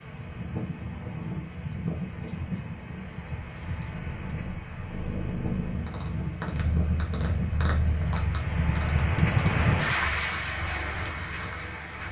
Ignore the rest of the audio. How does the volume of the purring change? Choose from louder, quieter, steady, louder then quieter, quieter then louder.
louder then quieter.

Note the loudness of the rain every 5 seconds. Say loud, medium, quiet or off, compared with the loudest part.
medium, loud, loud.